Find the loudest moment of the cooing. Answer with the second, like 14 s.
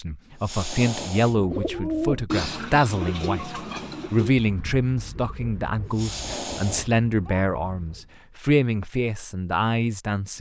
2 s.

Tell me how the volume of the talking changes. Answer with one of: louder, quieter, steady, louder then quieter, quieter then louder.
steady.